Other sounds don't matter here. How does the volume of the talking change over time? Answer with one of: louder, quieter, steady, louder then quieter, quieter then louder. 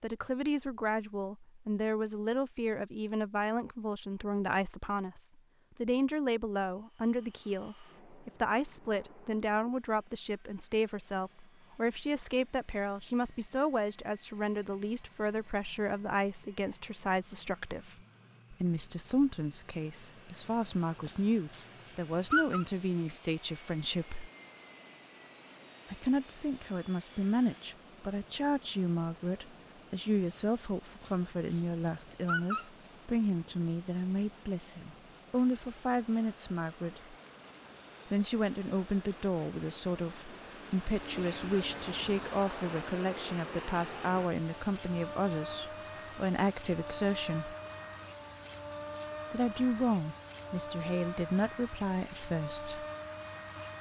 steady.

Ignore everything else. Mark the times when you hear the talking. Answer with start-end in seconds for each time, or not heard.
0.0-24.3, 25.9-37.1, 38.1-47.5, 49.3-52.9.